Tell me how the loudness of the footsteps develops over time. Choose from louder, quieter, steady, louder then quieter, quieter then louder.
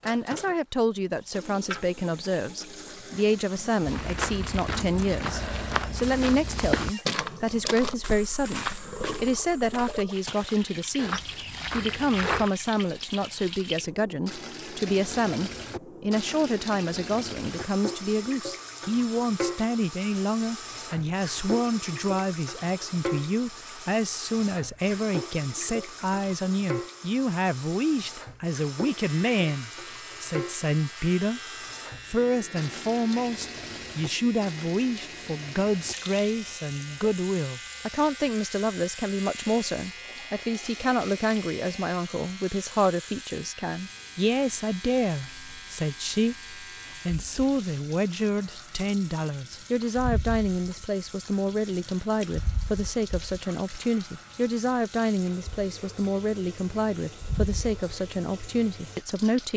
quieter then louder.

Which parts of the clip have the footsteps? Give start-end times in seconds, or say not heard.
3.8-12.5.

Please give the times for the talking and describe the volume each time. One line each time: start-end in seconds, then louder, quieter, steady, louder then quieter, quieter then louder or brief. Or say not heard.
0.1-31.4 steady
32.0-59.5 steady.